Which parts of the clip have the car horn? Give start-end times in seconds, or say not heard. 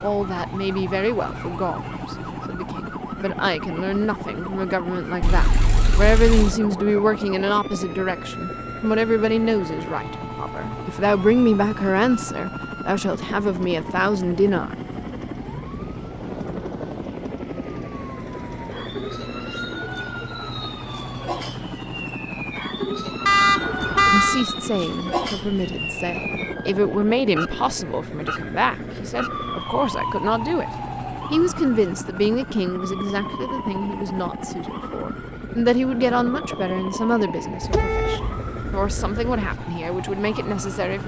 5.2-6.5, 23.2-24.4, 37.6-39.6.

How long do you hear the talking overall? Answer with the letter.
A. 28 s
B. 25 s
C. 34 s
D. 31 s
D.